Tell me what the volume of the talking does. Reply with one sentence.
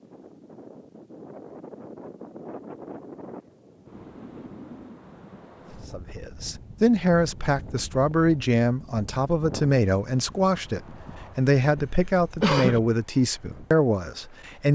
The volume of the talking stays about the same.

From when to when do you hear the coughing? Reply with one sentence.
You can hear the coughing from 11.8 to 12.8 s.